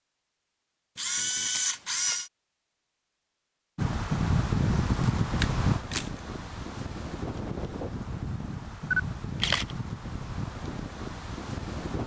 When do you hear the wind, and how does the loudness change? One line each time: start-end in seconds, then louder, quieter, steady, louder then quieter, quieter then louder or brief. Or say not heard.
3.8-12.0 quieter.